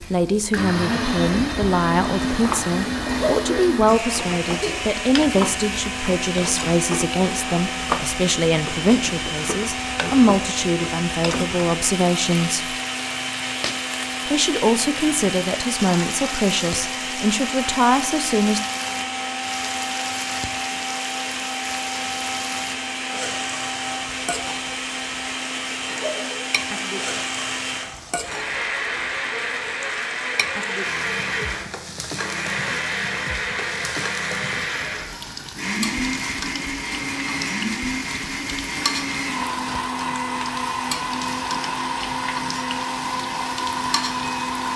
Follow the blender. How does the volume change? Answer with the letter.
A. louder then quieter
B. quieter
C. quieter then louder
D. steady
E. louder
D.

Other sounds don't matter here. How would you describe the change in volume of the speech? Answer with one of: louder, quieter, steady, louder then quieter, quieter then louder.
steady.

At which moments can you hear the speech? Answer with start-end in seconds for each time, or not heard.
0.0-12.8, 14.2-18.6.